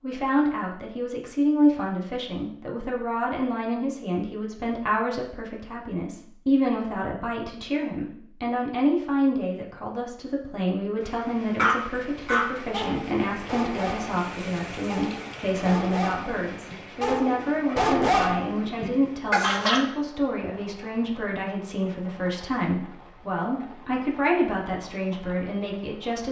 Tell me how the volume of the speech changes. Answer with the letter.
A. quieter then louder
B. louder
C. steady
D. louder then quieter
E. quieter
C.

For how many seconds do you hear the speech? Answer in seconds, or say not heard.
26 s.